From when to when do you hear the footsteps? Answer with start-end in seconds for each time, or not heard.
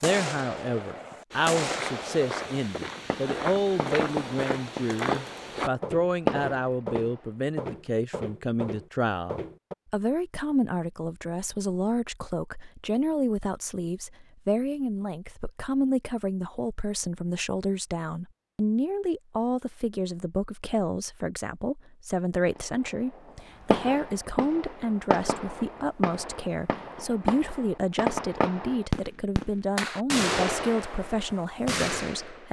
1.3-9.8.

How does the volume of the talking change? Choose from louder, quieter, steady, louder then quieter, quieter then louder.
steady.